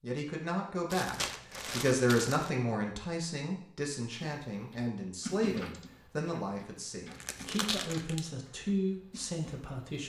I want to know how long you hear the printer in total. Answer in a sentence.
The printer can't be heard in this clip.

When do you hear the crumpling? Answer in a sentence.
You can hear the crumpling from 0.9 to 2.5 s and from 7.1 to 8.3 s.